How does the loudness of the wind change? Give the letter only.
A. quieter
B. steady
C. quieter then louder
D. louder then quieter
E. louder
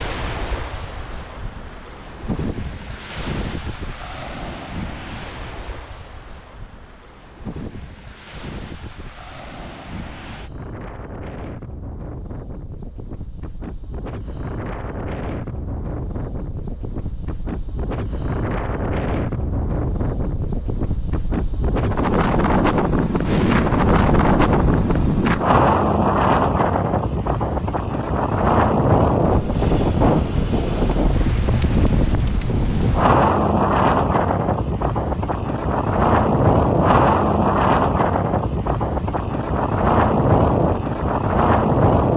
E.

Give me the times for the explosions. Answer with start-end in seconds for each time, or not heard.
23.2-25.2.